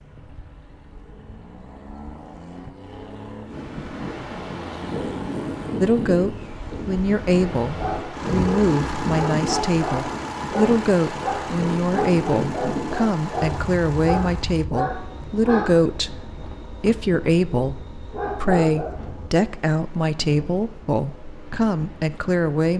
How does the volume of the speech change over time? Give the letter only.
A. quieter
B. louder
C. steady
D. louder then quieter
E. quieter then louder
C.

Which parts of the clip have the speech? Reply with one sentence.
The speech can be heard from 5.8 to 22.7 s.